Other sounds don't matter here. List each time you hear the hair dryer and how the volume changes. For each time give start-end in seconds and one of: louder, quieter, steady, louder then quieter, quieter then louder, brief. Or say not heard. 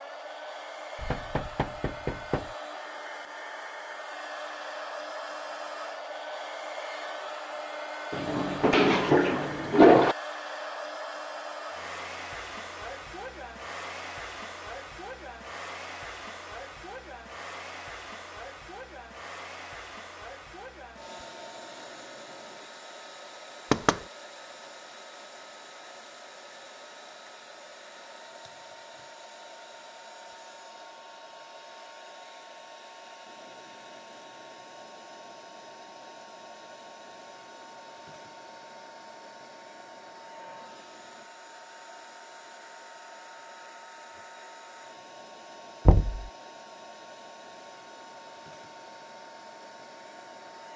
0.0-50.7 quieter.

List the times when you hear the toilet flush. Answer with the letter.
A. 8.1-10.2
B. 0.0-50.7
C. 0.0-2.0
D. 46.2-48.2
A.